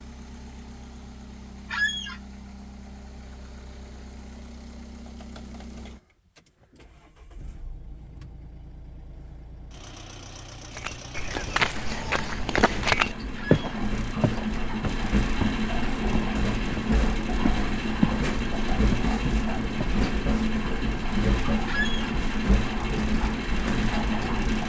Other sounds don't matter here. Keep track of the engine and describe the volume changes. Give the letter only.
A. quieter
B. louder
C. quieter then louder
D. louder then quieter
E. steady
B.